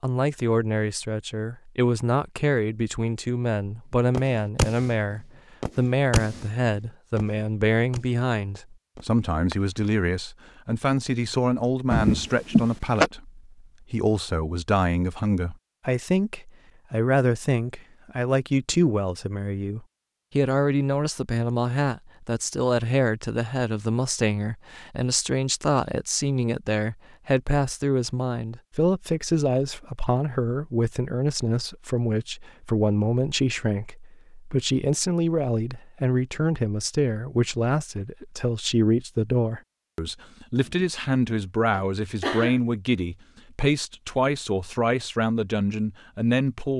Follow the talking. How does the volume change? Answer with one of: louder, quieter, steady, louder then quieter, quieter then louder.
steady.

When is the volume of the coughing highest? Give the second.
12 s.